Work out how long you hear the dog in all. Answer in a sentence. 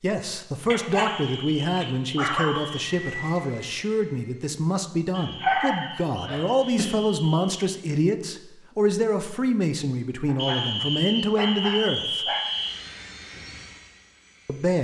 The dog can be heard for 6 seconds in total.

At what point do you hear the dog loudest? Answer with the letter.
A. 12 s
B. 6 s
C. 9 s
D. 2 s
B.